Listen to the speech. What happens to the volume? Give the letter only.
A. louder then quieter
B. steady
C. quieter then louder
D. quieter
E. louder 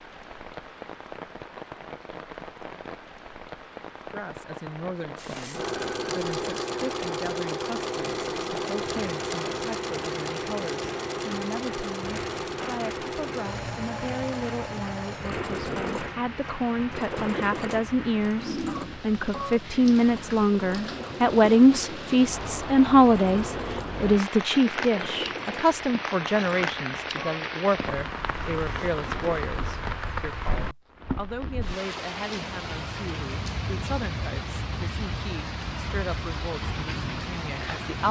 A.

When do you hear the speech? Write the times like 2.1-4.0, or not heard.
4.1-38.0.